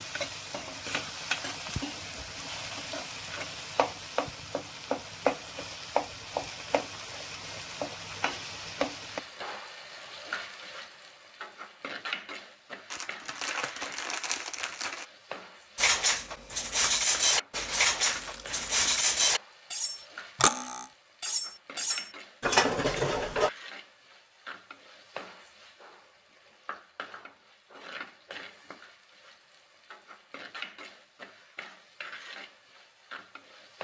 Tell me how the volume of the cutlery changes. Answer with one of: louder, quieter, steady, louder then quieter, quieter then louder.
steady.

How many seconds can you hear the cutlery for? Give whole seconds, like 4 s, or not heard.
8 s.